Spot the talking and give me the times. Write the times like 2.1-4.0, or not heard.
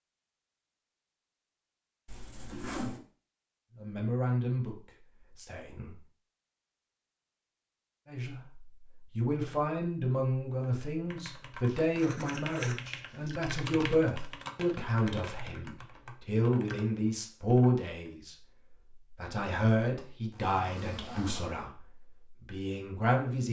3.8-6.0, 8.1-23.4.